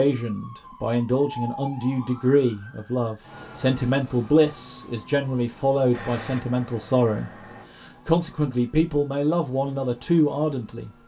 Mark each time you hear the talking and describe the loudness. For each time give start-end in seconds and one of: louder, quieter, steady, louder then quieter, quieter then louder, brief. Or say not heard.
0.0-10.9 steady.